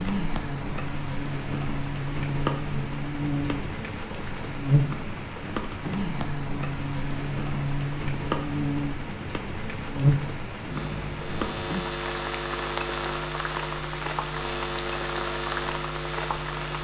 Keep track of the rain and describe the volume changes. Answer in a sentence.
The loudness of the rain stays about the same.